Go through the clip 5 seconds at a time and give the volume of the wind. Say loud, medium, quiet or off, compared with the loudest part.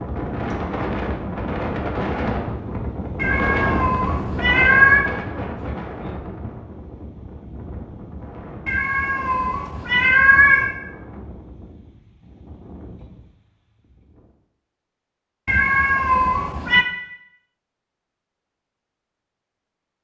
loud, medium, quiet, off.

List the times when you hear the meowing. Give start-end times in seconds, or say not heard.
3.2-5.1, 8.7-10.8, 15.4-16.9.